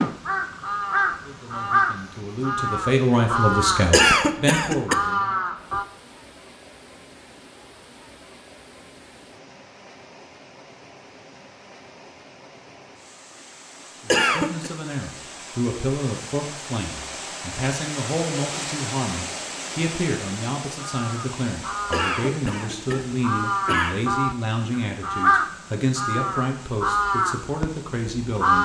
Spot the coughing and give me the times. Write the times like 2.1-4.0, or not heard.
3.9-5.0, 14.1-14.7, 21.9-24.1.